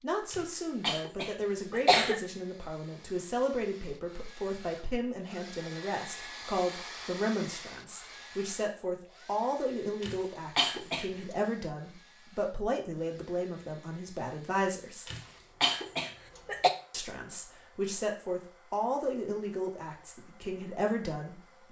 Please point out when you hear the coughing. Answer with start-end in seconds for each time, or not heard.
0.3-2.2, 10.0-11.1, 15.1-16.7.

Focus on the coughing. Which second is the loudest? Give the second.
2 s.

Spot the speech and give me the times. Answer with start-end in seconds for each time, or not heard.
0.0-15.1, 16.9-21.6.